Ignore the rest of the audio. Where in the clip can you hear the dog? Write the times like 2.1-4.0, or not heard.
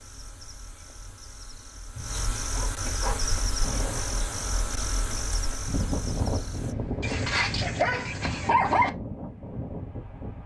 1.9-3.3, 7.0-8.9.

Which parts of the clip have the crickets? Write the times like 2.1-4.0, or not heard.
0.0-6.8.